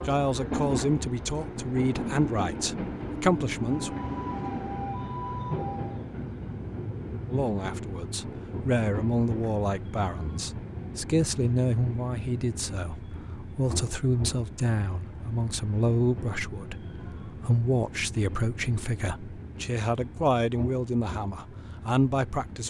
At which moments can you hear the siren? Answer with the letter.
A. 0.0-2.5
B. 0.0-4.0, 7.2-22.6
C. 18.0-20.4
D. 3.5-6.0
D.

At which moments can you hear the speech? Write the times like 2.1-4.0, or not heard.
0.0-4.0, 7.2-22.6.